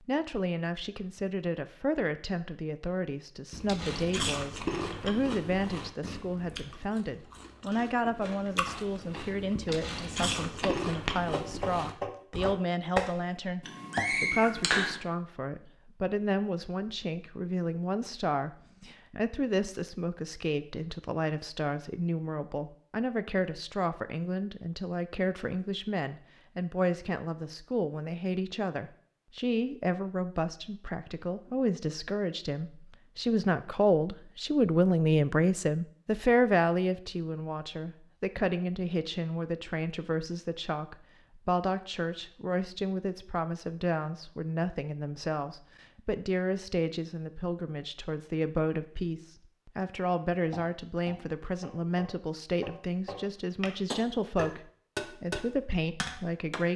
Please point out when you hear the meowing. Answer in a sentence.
The meowing can be heard from 13.6 to 15.0 s.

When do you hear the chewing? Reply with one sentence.
You can hear the chewing from 3.5 to 12.6 s.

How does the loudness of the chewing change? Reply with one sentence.
The loudness of the chewing goes down, then up.